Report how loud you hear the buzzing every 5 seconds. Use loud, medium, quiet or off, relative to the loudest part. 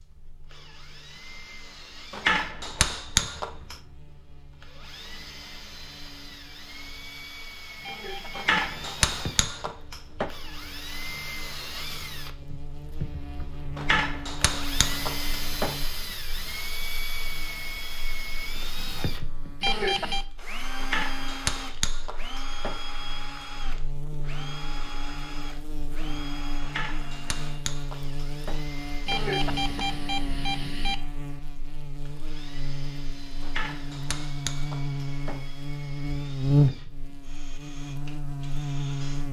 quiet, quiet, quiet, quiet, quiet, medium, medium, loud.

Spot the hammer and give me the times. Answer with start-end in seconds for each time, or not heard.
2.1-3.8, 8.3-10.3, 13.8-15.8, 20.8-22.8, 26.6-28.6, 33.4-35.5.